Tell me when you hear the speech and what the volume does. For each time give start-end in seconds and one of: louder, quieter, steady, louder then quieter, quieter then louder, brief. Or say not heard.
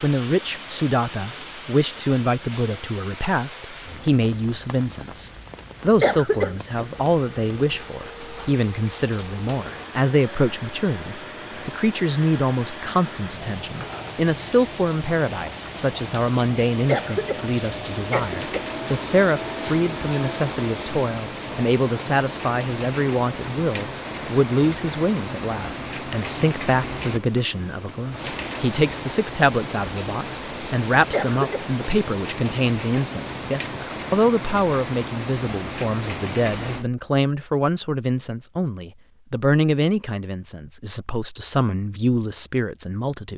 0.0-43.3 steady.